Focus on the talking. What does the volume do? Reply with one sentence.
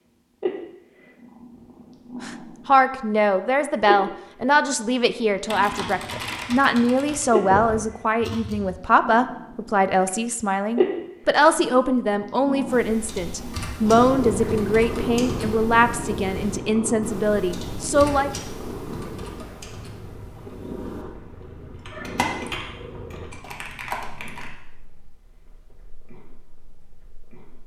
The loudness of the talking stays about the same.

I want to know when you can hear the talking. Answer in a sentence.
You can hear the talking from 2.2 to 18.3 s.